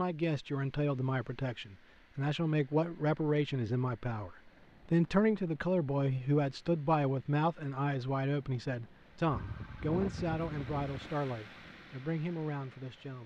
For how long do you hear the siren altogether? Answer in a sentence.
The siren can be heard for 2 seconds in total.